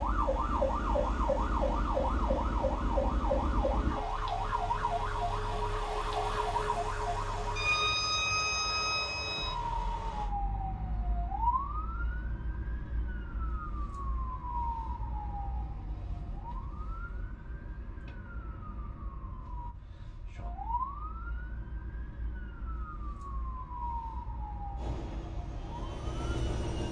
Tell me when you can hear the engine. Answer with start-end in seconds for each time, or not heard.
0.0-10.3, 24.8-26.8.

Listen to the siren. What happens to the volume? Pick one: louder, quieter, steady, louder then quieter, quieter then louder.
quieter.